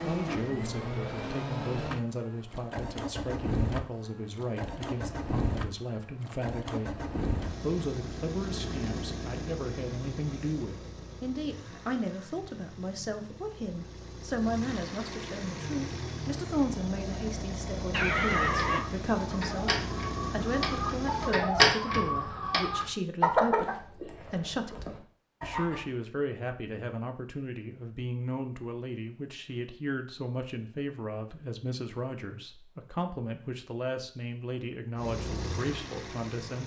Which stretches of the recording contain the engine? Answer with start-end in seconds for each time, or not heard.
0.0-21.4, 35.0-36.6.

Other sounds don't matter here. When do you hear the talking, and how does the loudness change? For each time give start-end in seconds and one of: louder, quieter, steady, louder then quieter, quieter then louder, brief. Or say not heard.
0.0-36.6 steady.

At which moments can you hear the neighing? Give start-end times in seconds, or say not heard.
17.9-19.0.